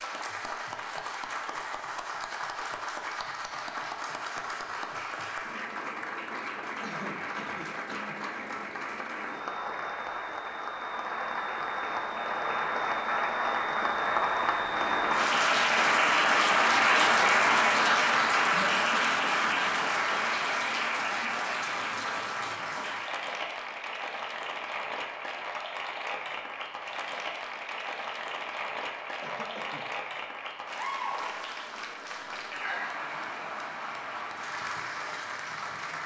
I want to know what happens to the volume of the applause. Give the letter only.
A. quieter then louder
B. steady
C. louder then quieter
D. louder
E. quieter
C.